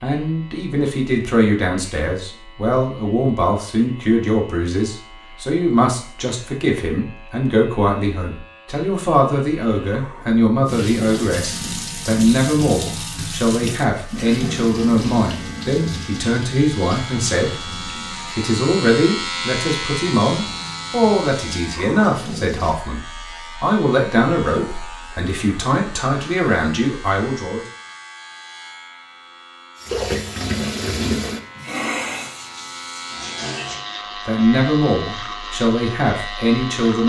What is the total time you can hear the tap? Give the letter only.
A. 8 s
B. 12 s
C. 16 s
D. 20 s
C.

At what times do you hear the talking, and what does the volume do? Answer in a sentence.
You can hear the talking from 0.0 to 27.6 s, at a steady volume; and briefly from 34.2 to 37.0 s.